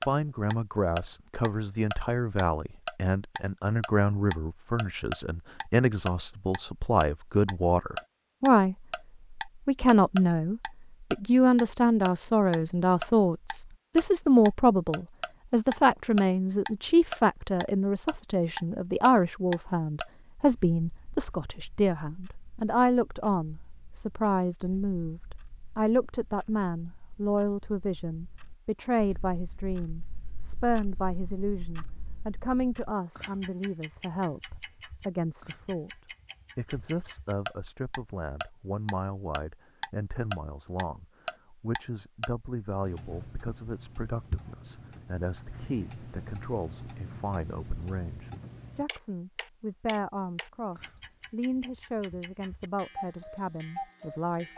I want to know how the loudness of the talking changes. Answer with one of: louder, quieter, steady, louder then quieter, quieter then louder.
quieter.